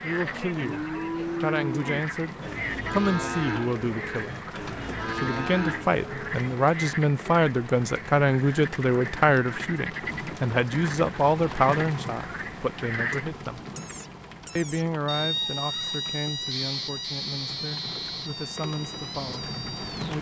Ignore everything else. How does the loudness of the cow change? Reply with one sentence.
The loudness of the cow goes down, then up.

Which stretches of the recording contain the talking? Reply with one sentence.
You can hear the talking from 0.0 to 4.4 s, from 5.2 to 13.6 s and from 14.6 to 20.1 s.